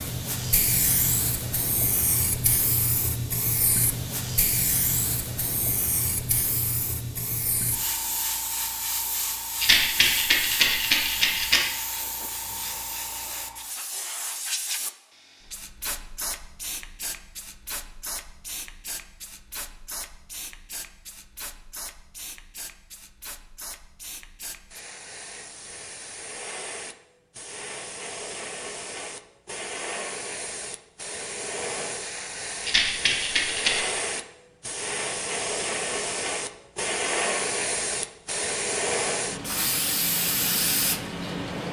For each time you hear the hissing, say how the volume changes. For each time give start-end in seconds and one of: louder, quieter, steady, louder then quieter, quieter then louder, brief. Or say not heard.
0.0-41.6 quieter then louder.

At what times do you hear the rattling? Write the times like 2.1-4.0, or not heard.
9.6-11.6, 32.6-34.0.